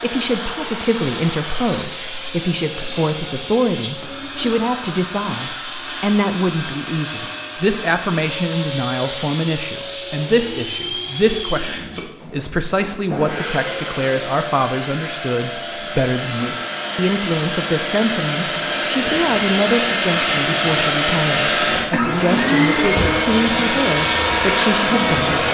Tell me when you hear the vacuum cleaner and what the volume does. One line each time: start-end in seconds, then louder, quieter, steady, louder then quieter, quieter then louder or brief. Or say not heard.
0.0-25.4 louder.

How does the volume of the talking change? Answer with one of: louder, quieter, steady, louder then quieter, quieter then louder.
steady.